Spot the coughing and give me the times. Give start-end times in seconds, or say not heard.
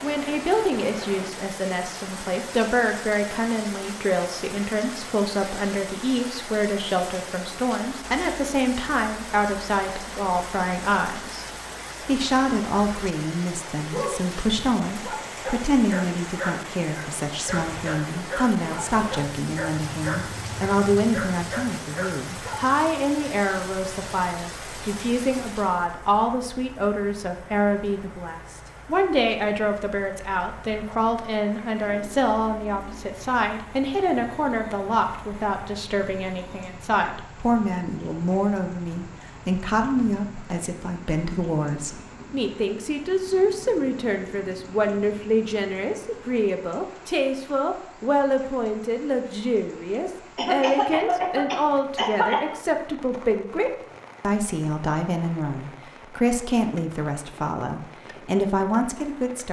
50.4-52.5.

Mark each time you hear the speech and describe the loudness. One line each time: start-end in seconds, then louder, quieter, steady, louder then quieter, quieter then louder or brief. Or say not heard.
0.0-11.4 steady
12.1-59.4 steady.